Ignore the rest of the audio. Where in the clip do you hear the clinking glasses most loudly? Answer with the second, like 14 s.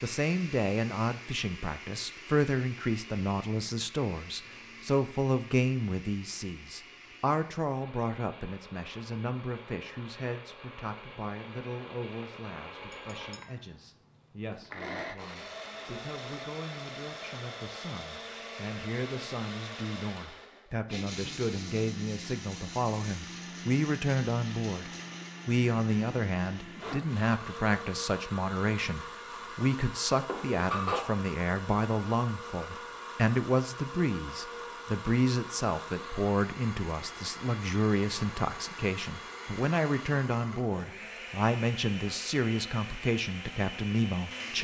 31 s.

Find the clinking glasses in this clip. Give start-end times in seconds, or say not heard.
12.9-13.6, 30.2-31.1.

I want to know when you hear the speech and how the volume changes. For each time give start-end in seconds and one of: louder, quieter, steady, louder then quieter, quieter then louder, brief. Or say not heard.
0.0-44.5 quieter then louder.